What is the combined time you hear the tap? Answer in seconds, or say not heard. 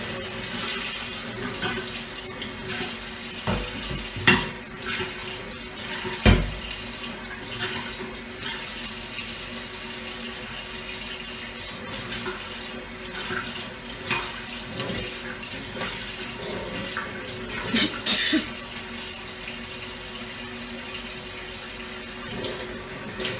23 s.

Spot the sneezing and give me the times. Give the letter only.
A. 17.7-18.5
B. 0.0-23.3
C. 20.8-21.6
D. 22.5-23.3
A.